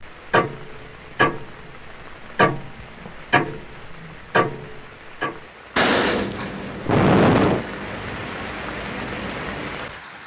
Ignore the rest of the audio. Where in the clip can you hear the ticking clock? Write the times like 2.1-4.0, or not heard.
0.2-9.7.